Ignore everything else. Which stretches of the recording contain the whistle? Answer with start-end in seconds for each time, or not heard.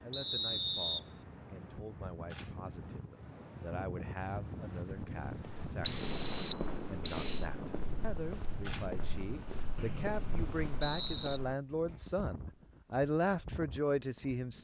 0.1-1.0, 5.8-7.5, 9.8-11.4.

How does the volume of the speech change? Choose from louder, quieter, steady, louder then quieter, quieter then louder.
louder.